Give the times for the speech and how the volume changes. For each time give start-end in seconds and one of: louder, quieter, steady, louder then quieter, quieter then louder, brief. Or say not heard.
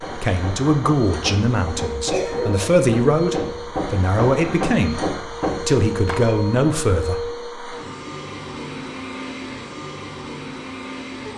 0.0-7.5 steady.